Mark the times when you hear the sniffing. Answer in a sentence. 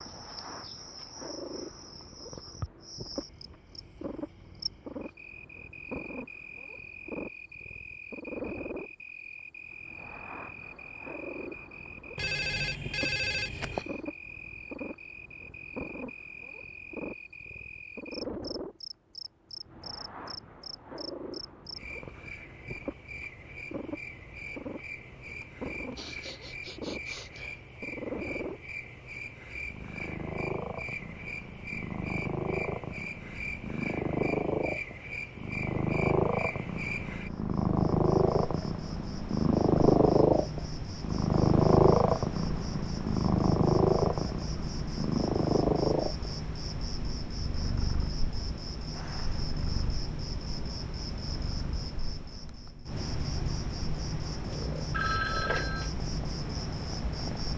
The sniffing can be heard from 13.7 to 14.1 s, from 25.4 to 27.6 s and from 48.9 to 49.5 s.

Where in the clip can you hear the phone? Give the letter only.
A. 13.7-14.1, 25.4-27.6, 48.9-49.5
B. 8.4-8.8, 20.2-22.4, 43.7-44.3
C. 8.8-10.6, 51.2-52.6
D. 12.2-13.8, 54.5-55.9
D.